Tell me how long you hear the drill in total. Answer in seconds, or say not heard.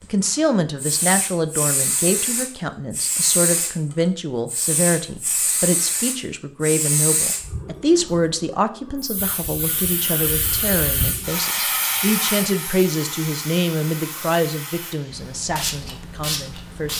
not heard.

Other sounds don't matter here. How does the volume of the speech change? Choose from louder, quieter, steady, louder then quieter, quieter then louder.
steady.